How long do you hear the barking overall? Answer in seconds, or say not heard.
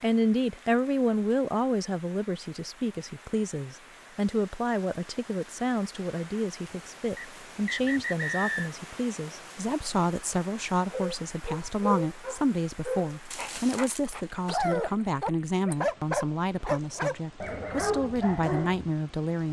8 s.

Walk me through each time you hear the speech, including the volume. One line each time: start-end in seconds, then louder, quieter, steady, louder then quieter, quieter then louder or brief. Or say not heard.
0.0-19.4 steady.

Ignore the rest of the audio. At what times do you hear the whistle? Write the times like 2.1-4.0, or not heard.
7.2-8.7.